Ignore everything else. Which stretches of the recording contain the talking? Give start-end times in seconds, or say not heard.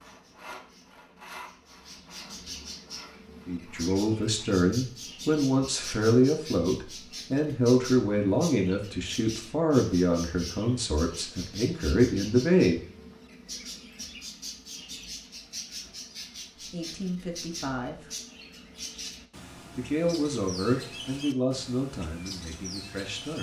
3.5-12.8, 16.7-18.1, 19.8-23.3.